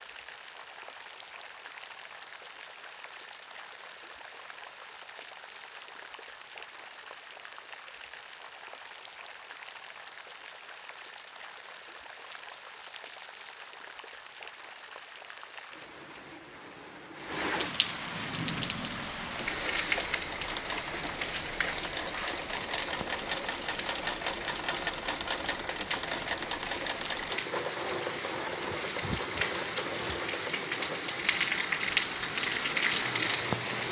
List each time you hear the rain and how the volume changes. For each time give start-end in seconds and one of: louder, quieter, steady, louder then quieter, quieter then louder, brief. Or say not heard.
0.0-33.8 louder.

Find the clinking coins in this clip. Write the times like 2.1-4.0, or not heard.
not heard.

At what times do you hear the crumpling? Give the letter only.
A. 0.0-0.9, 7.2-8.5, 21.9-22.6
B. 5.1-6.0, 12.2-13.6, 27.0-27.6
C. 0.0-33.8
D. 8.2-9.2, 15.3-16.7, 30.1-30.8
B.